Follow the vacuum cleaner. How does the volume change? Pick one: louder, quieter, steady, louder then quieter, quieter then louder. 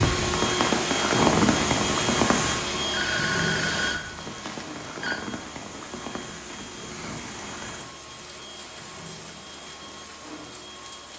quieter.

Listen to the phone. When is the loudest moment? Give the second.
3 s.